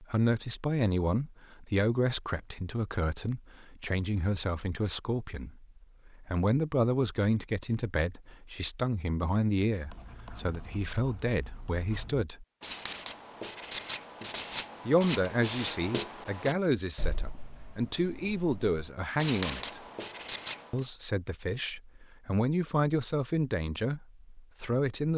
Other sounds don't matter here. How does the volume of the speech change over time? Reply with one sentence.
The volume of the speech stays about the same.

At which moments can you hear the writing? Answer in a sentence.
The writing can be heard from 9.8 to 20.9 s.